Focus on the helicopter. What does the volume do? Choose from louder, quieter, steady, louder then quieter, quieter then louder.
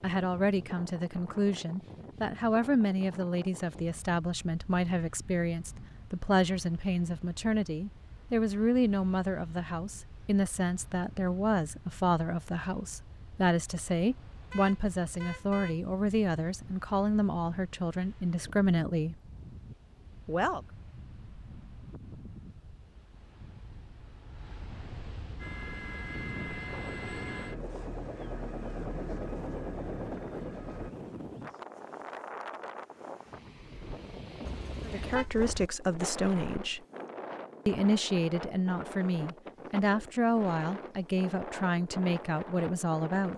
steady.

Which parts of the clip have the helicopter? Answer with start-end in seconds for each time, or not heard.
25.4-30.9.